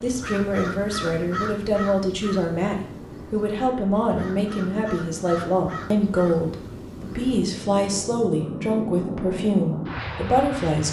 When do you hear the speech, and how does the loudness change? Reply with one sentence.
The speech can be heard from 0.0 to 10.8 s, at a steady volume.